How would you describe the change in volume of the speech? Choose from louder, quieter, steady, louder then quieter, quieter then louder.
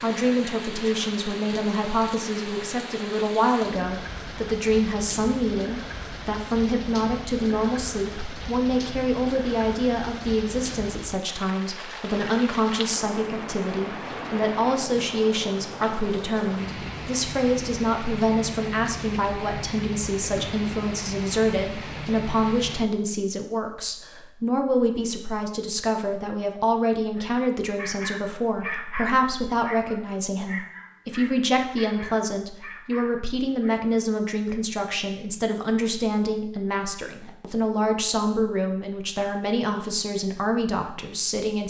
steady.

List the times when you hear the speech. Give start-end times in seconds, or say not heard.
0.0-41.6.